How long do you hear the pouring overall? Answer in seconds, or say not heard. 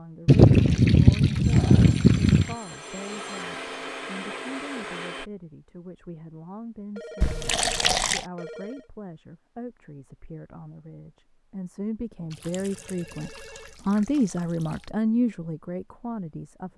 6 s.